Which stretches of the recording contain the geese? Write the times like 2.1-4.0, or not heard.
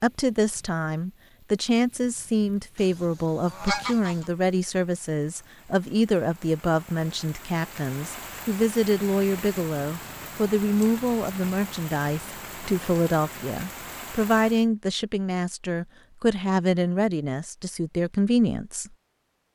2.8-4.3.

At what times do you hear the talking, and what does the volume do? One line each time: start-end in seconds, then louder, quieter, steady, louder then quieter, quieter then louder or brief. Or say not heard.
0.0-18.9 steady.